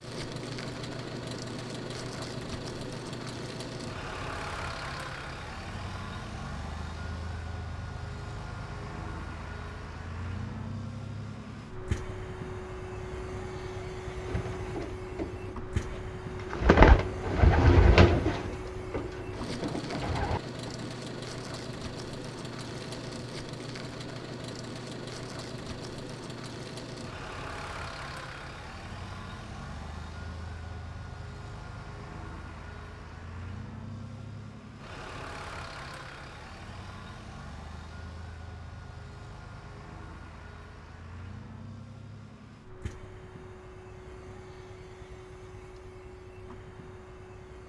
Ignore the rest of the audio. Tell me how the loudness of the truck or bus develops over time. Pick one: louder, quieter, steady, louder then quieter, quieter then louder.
quieter.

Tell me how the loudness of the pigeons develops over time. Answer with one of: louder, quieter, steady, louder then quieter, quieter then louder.
louder then quieter.